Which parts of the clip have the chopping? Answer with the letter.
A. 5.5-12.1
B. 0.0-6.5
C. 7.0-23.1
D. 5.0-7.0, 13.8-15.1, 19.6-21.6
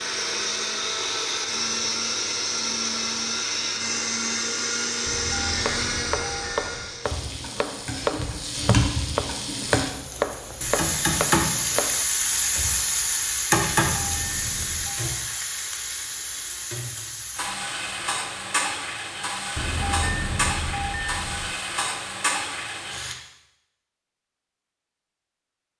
A.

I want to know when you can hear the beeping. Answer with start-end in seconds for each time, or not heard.
5.0-7.0, 13.8-15.1, 19.6-21.6.